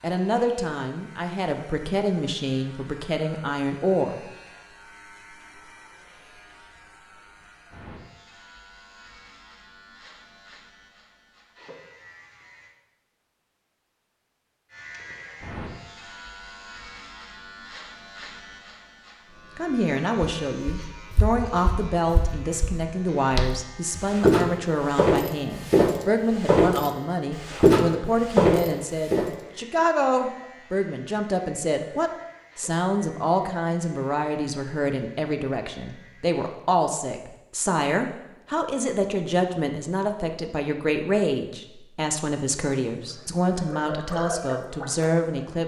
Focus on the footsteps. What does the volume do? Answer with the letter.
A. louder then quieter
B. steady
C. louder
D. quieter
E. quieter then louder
C.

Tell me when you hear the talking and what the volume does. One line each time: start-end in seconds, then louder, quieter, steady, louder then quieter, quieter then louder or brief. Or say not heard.
0.0-4.2 steady
19.6-45.6 steady.